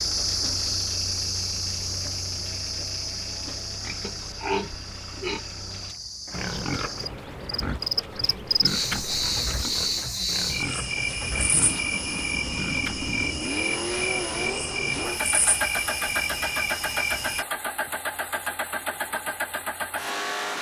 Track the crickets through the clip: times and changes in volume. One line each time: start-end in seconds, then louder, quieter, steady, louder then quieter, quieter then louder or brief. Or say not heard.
0.0-17.4 quieter then louder.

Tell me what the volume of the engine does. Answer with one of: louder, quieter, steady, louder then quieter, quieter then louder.
louder.